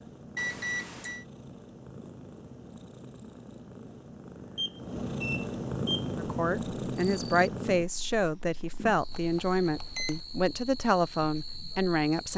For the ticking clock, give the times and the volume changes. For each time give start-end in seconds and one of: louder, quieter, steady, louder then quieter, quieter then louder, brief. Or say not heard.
not heard.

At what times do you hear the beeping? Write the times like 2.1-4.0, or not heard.
0.3-1.2, 4.5-6.1, 9.1-10.2.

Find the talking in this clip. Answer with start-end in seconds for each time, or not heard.
6.2-12.3.